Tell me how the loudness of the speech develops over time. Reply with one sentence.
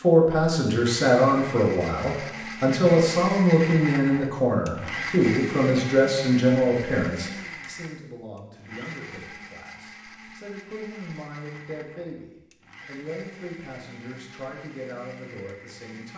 The volume of the speech goes down.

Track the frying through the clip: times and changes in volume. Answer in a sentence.
You can't hear the frying here.